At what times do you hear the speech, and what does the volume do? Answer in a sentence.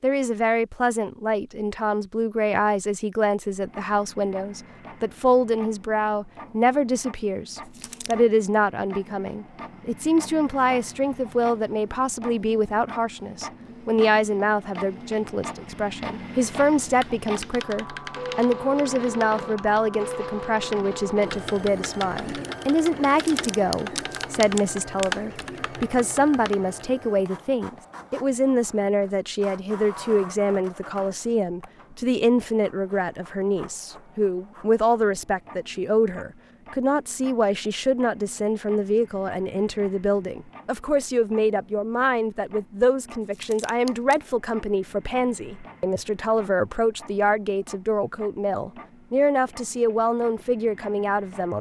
You can hear the speech from 0.0 to 51.5 s, at a steady volume.